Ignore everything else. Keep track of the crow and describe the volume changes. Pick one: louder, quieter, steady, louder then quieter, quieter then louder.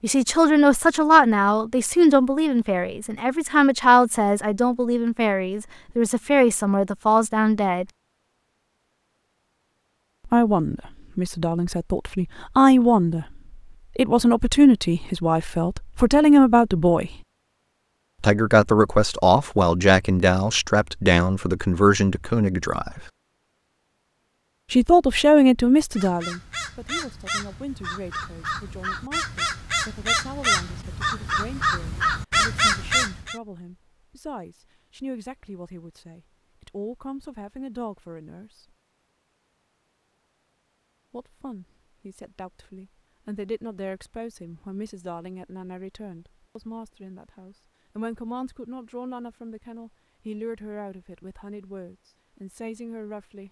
louder.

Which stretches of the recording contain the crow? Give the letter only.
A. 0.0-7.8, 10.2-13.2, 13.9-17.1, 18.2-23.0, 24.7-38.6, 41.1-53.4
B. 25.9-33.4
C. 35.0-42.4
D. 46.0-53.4
B.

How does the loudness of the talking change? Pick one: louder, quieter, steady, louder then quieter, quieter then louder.
quieter.